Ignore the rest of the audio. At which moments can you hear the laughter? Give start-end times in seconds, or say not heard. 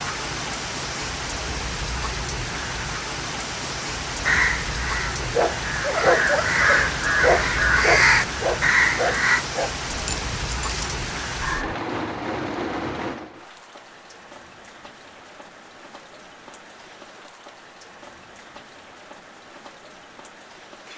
not heard.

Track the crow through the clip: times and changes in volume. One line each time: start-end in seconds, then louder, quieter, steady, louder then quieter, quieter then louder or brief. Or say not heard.
4.2-9.4 louder.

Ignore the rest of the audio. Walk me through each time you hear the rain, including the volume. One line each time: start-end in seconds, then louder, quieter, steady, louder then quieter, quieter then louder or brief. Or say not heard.
0.0-20.9 quieter.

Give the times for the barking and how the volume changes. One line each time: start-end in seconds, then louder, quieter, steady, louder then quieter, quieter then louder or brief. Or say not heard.
5.2-11.8 quieter.